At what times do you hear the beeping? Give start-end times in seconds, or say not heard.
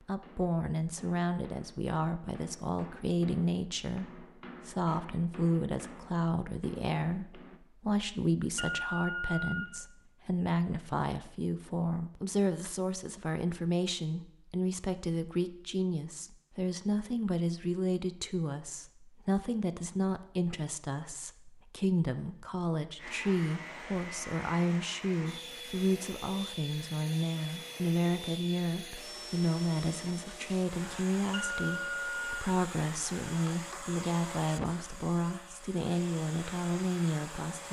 8.6-9.7, 31.3-32.2.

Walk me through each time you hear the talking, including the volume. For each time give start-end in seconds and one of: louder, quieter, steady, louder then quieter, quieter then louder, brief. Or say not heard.
0.1-37.6 steady.